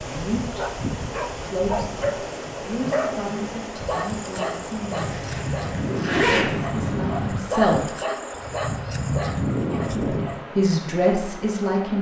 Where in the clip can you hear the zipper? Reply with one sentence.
You can hear the zipper from 5.0 to 6.5 s.